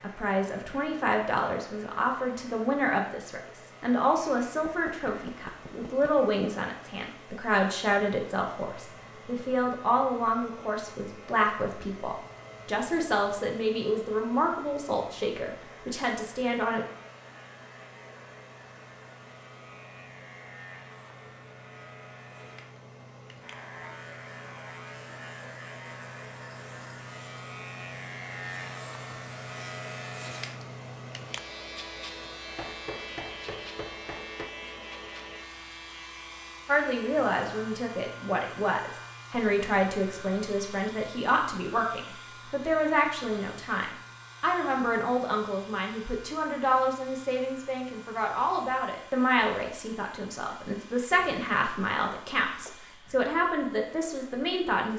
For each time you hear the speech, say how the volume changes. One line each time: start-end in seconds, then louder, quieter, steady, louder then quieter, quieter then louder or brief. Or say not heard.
0.0-16.9 steady
36.6-54.9 steady.